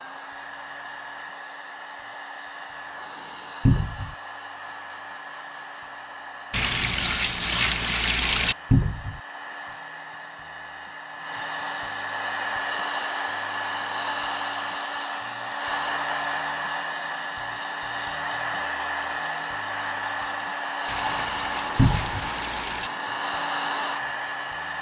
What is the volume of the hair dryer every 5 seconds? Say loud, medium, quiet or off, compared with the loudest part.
medium, medium, loud, loud, loud.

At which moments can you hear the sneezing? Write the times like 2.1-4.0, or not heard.
not heard.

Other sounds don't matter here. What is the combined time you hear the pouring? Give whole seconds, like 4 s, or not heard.
4 s.